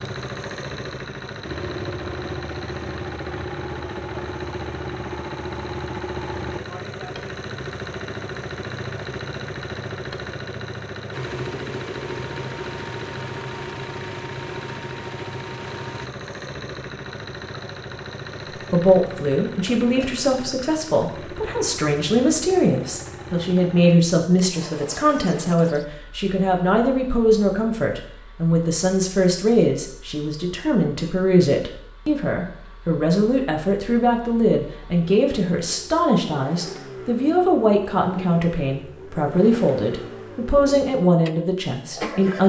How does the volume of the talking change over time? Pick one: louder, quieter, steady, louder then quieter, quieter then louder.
steady.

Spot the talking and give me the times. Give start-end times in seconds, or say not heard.
18.6-42.4.